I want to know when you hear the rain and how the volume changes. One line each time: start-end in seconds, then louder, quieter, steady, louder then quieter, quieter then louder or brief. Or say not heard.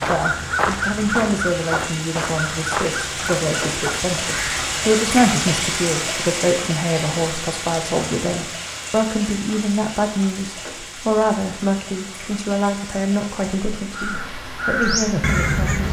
0.0-15.8 louder then quieter.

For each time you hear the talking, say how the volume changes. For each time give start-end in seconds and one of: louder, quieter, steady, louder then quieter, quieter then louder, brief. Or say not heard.
0.1-15.8 steady.